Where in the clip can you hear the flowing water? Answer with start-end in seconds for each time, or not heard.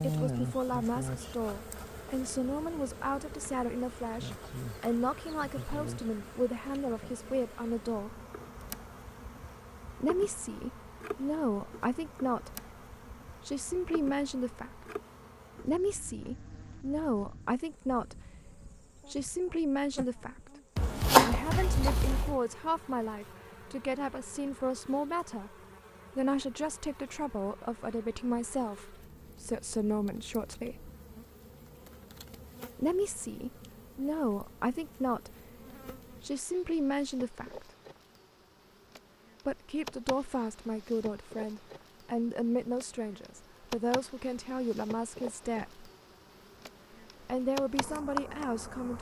not heard.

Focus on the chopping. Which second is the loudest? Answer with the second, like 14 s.
21 s.